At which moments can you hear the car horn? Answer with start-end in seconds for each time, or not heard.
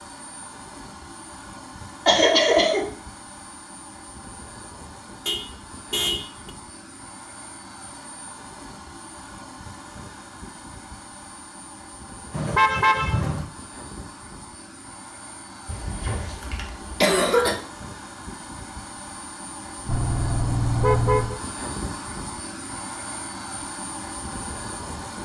5.2-6.5, 12.3-13.5, 19.9-21.4.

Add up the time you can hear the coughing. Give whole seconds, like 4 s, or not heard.
3 s.